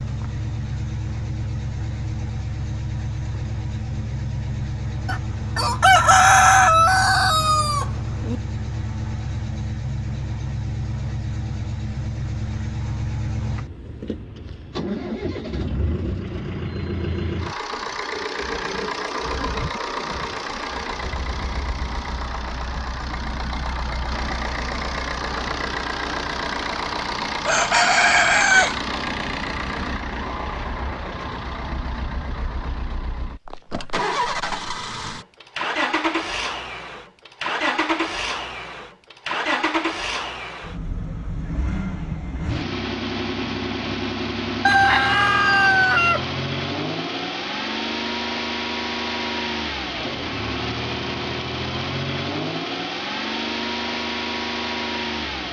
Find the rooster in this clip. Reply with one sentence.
You can hear the rooster from 5.0 to 8.3 s, from 27.4 to 28.8 s and from 44.6 to 46.2 s.